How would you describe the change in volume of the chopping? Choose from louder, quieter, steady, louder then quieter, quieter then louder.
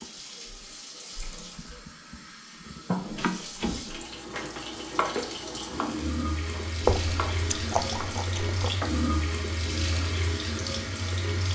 quieter.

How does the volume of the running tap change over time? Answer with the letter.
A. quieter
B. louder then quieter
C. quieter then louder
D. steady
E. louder
E.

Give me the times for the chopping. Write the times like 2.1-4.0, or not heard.
2.9-9.1.